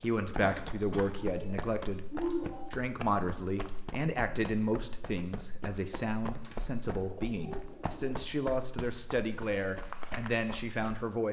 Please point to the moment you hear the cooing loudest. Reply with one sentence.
The volume of the cooing peaks at 2 seconds.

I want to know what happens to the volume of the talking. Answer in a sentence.
The volume of the talking stays about the same.